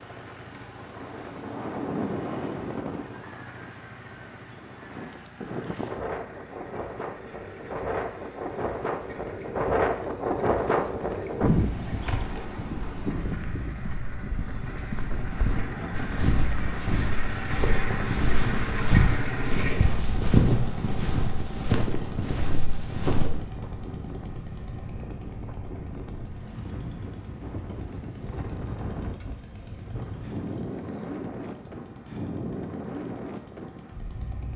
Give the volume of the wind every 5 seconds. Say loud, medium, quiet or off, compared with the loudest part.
medium, loud, loud, medium, medium, medium, medium.